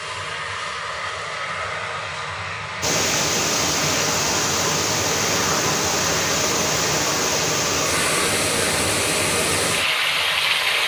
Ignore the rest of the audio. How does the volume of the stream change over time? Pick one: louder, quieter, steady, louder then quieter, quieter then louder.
steady.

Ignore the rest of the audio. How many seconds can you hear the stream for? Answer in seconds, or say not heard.
8 s.